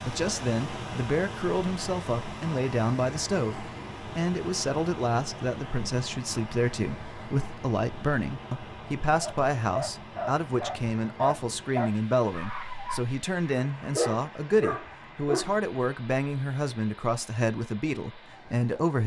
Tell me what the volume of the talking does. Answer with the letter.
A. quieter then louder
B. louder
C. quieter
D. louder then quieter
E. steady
E.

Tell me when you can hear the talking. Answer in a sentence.
You can hear the talking from 0.1 to 19.0 s.